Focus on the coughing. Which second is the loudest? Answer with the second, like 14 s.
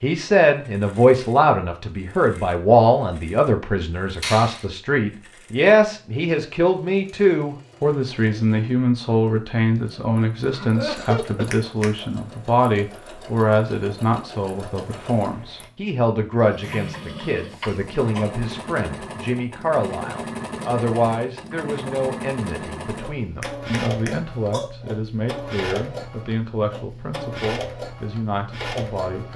11 s.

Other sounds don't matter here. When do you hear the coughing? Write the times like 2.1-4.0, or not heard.
10.5-11.5, 16.6-18.3.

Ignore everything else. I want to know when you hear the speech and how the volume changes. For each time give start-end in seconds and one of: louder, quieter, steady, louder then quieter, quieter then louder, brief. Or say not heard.
0.0-29.3 quieter.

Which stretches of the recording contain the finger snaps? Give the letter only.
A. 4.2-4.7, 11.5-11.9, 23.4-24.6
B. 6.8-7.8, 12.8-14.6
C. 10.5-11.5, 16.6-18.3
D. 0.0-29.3
A.